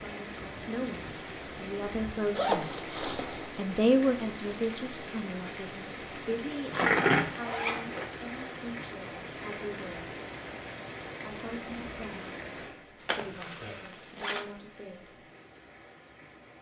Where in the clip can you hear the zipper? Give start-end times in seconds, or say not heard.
2.3-3.5, 6.7-7.9, 13.0-14.4.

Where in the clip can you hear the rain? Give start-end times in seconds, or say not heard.
0.0-16.5.